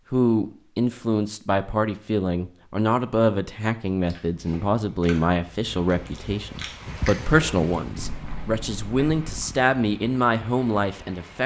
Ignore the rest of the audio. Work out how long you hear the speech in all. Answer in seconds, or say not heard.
11 s.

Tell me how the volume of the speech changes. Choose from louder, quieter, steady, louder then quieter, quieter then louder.
steady.